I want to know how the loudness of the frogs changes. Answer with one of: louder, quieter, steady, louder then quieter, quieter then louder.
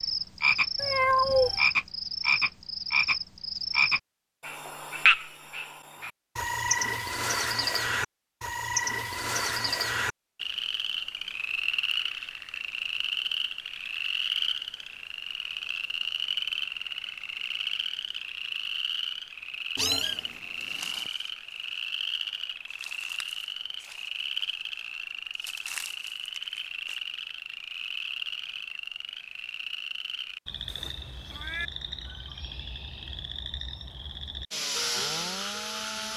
quieter.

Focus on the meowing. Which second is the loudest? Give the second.
1 s.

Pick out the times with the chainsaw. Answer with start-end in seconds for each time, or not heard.
34.5-36.1.